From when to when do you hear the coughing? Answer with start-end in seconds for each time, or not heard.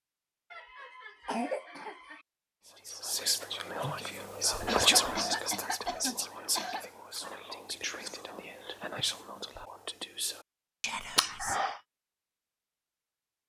0.5-2.2, 4.7-6.8, 11.2-11.7.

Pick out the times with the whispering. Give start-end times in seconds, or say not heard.
2.6-11.6.